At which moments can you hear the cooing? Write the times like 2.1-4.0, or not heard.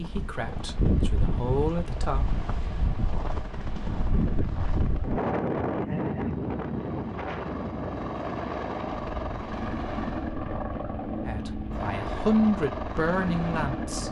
not heard.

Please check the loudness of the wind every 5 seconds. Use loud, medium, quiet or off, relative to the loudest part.
loud, loud, medium.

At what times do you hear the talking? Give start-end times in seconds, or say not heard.
0.0-2.4, 11.2-14.0.